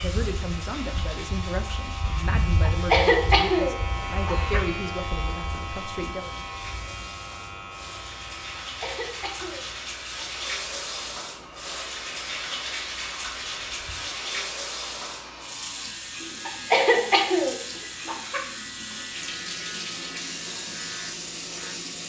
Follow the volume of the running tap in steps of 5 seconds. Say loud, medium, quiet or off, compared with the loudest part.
medium, medium, loud, loud, loud.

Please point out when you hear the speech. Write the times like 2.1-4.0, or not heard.
0.0-6.3.